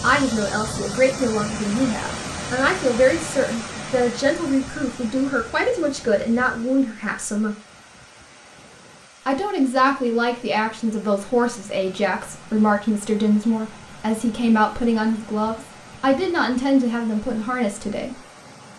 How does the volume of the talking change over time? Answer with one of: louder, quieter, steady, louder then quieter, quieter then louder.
steady.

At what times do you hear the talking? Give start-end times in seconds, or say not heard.
0.0-7.5, 9.2-18.2.